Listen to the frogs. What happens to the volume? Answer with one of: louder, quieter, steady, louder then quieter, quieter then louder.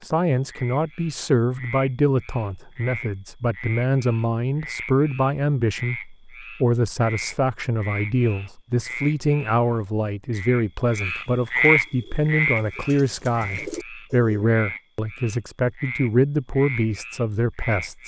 louder then quieter.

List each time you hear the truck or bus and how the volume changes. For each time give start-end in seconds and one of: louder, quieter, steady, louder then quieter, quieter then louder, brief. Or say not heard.
not heard.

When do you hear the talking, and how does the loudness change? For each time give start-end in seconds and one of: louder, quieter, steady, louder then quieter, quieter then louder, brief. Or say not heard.
0.0-18.0 steady.